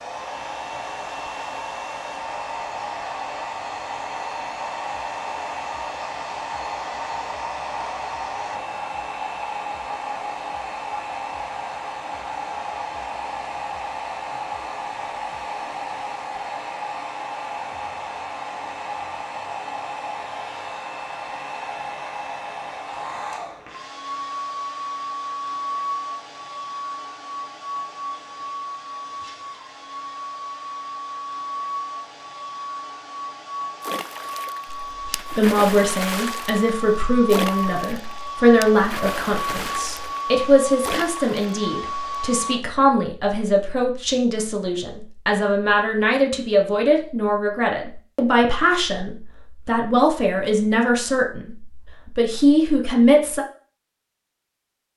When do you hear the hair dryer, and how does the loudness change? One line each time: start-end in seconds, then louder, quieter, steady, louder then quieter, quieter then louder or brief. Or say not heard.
0.0-42.6 steady.